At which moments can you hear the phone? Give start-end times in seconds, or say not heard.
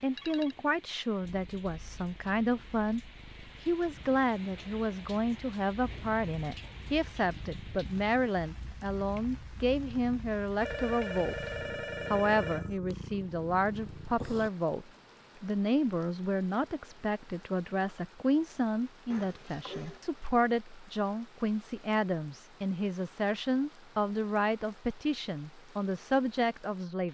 0.1-0.6, 10.6-12.8, 19.1-20.0.